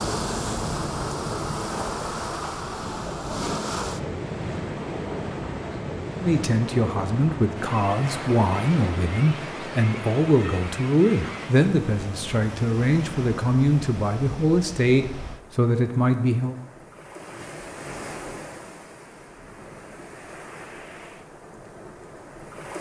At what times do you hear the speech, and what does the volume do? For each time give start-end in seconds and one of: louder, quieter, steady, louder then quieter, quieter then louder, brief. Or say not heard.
6.2-16.6 steady.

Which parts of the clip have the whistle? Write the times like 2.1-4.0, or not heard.
not heard.